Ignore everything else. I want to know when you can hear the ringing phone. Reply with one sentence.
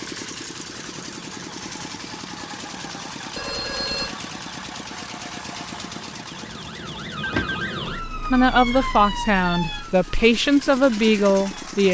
You can hear the ringing phone from 3.4 to 4.2 s and from 7.2 to 7.8 s.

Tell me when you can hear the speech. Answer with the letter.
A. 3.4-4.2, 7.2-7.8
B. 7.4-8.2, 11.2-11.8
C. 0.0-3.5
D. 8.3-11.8
D.